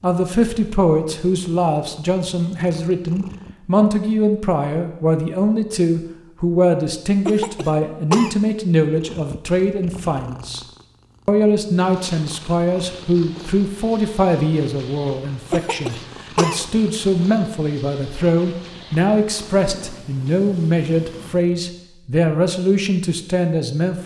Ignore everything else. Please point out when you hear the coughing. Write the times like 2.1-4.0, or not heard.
7.2-8.6, 15.5-16.8.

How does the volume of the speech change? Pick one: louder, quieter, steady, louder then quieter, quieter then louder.
steady.